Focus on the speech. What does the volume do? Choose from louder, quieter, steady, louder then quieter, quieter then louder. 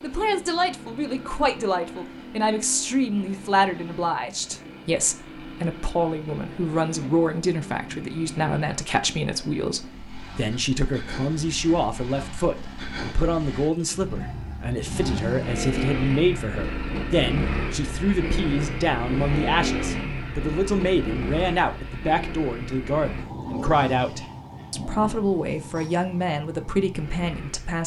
steady.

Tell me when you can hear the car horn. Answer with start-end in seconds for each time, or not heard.
not heard.